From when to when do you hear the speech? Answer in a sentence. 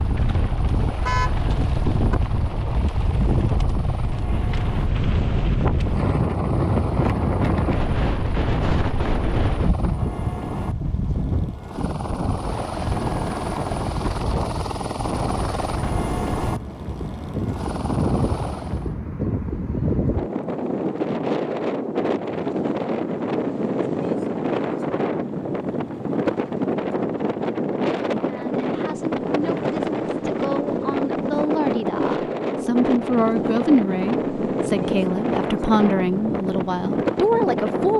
The speech can be heard from 28.2 to 37.9 s.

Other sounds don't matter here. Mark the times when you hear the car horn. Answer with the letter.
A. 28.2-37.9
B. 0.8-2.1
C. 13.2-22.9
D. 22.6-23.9
B.